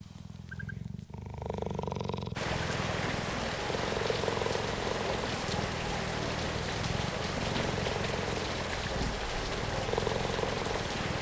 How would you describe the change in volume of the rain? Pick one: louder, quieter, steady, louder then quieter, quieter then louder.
steady.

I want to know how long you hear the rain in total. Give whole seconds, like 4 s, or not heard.
9 s.